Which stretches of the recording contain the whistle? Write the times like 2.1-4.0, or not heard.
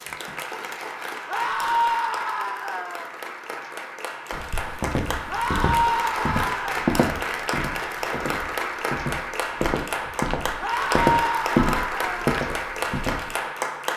not heard.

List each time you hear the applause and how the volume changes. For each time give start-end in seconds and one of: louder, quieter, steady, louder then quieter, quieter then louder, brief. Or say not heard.
0.0-13.9 louder.